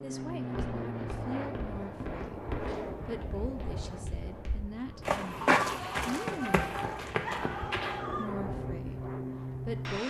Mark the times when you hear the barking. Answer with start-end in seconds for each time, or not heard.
5.4-8.3.